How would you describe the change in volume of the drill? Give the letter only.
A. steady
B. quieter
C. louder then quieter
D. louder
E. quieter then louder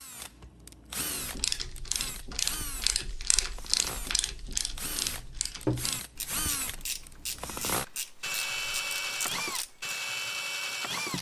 D.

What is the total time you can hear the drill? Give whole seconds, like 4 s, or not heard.
11 s.